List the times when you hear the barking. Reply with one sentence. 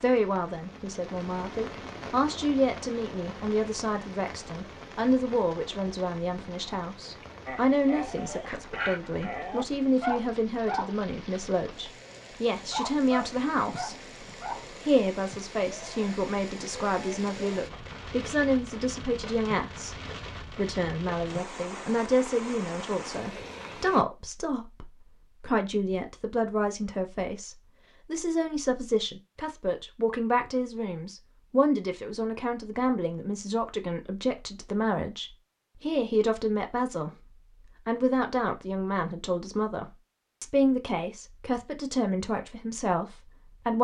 The barking can be heard from 7.5 to 14.7 s.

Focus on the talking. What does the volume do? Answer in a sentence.
The volume of the talking stays about the same.